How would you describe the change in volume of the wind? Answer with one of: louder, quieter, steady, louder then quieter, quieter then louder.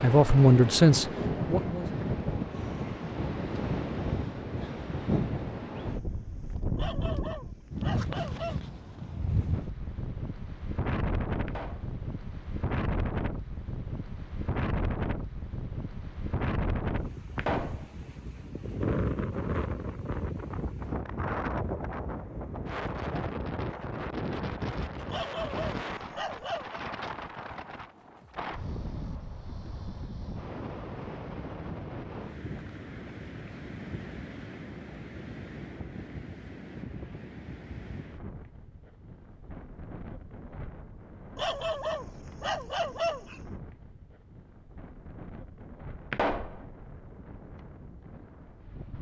quieter.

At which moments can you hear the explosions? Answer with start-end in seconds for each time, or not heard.
11.4-11.9, 17.4-17.9, 46.1-46.6.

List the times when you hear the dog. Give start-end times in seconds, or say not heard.
6.8-8.6, 25.1-26.8, 41.4-43.5.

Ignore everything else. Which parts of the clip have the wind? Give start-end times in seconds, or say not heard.
0.0-48.9.